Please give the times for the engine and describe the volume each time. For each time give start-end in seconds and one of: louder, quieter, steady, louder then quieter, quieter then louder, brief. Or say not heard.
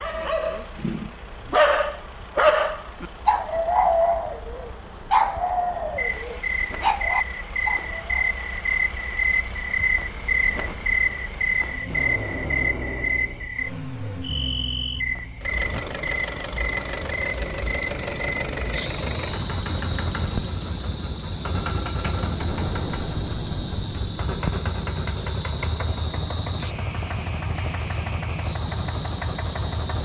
0.0-30.0 louder.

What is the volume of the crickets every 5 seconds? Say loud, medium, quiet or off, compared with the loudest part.
quiet, loud, loud, medium, medium, medium.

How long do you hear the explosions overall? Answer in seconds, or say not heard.
3 s.